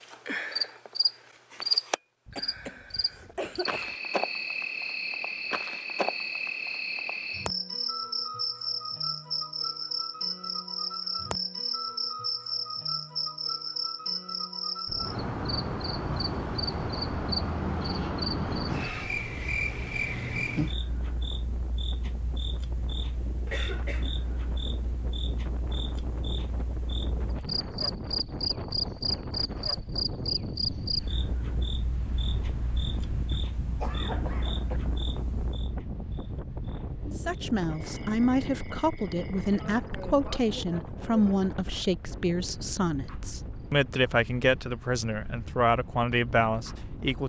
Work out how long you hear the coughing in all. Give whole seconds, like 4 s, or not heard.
4 s.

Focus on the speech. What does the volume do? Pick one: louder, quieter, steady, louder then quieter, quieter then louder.
steady.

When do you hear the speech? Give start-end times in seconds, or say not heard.
37.0-47.2.